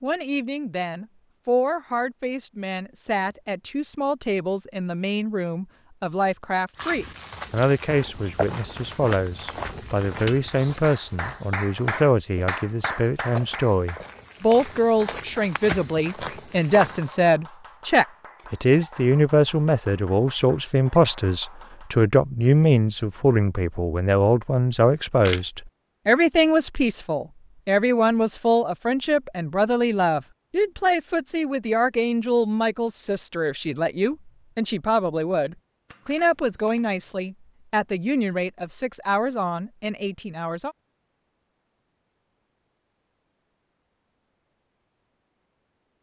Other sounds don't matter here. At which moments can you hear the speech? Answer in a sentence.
You can hear the speech from 0.0 to 40.8 s.